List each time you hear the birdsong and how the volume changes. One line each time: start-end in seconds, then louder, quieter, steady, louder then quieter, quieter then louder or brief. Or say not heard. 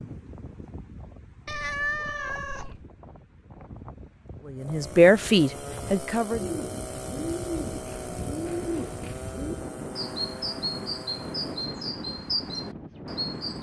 6.3-13.5 steady.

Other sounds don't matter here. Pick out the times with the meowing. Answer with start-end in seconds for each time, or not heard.
1.4-2.8.